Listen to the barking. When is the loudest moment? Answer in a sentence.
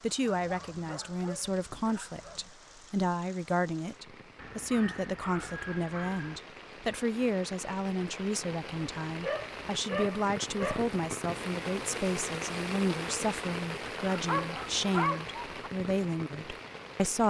The loudest moment of the barking is at 15 seconds.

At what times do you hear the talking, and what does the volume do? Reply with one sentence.
You can hear the talking from 0.0 to 17.2 s, at a steady volume.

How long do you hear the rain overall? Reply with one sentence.
The rain can be heard for 17 seconds in total.